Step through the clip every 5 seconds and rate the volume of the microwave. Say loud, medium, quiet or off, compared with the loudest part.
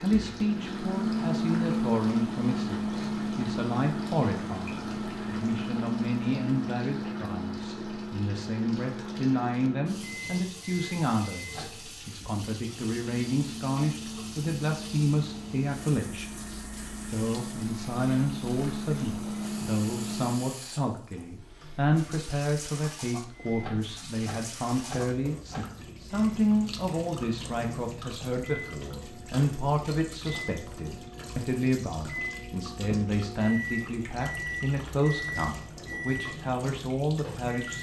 loud, medium, medium, medium, medium, quiet, medium, medium.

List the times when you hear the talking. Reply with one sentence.
The talking can be heard from 0.0 to 37.7 s.